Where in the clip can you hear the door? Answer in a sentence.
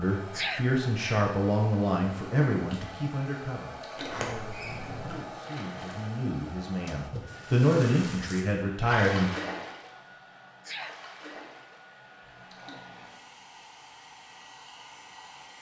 The door can be heard from 4.0 to 5.2 s.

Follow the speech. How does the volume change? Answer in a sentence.
The volume of the speech goes down, then up.